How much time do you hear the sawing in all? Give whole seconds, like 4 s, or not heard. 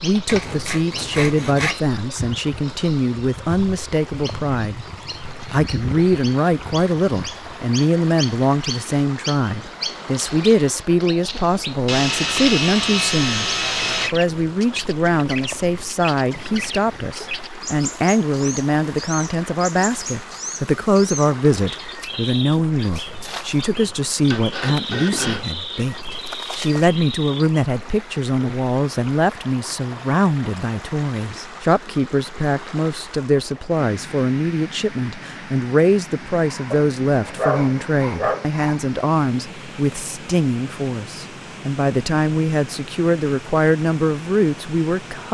8 s.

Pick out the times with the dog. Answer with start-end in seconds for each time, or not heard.
36.7-38.5.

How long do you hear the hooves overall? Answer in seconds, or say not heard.
not heard.